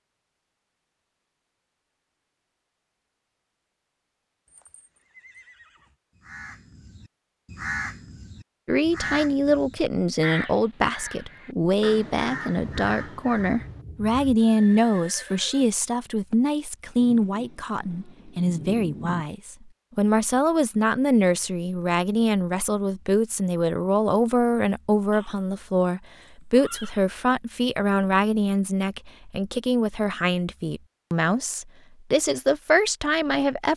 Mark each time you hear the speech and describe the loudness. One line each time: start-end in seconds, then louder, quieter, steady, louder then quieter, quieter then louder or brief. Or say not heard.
8.7-33.7 steady.